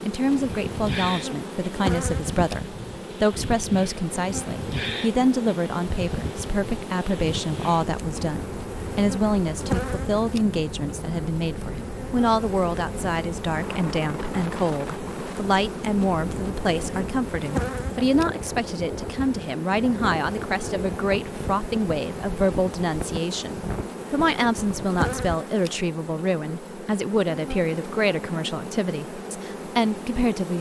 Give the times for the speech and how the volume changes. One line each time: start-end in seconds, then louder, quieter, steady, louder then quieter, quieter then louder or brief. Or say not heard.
0.0-30.5 steady.